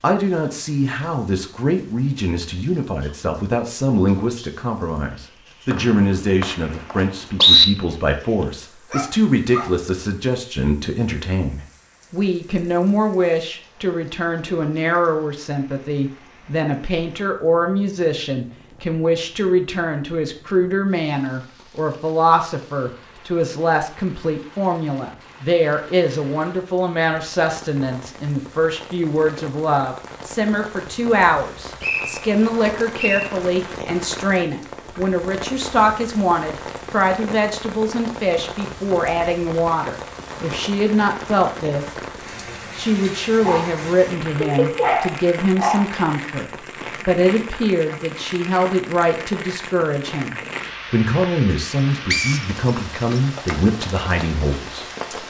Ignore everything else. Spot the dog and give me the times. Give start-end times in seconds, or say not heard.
8.9-9.8, 43.4-46.0.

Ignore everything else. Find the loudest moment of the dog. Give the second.
45 s.